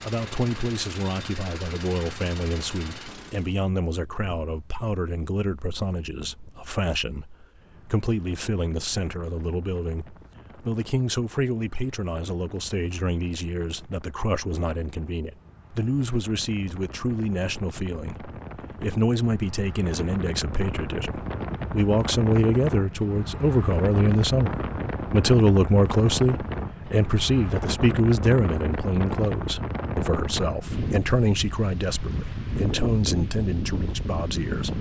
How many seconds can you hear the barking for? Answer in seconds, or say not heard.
not heard.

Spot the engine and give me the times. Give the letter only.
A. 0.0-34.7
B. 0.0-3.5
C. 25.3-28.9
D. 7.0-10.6
B.